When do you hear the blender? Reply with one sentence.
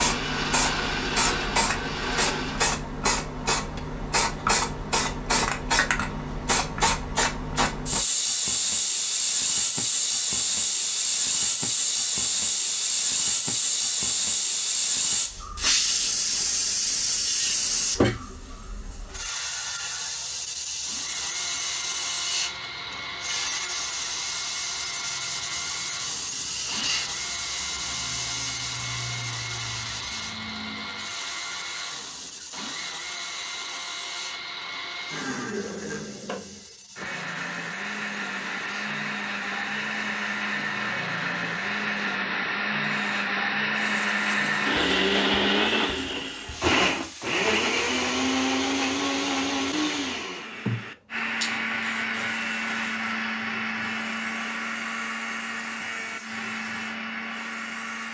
You can hear the blender from 0.0 to 2.8 s and from 20.8 to 58.0 s.